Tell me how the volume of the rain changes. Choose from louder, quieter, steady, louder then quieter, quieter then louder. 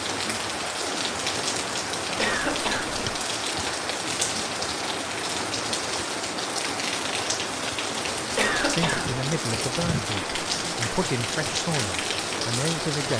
steady.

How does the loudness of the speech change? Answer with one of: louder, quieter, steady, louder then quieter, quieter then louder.
steady.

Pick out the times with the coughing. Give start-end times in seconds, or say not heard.
2.1-3.2, 8.3-9.2.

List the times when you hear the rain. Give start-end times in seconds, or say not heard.
0.0-13.1.